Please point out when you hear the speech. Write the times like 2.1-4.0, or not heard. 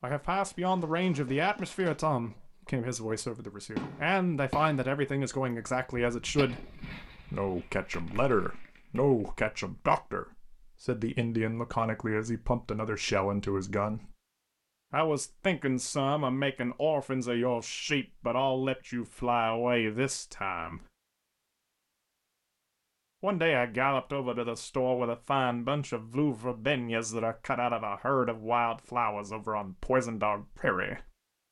0.0-6.7, 7.3-14.2, 14.9-20.9, 23.2-31.1.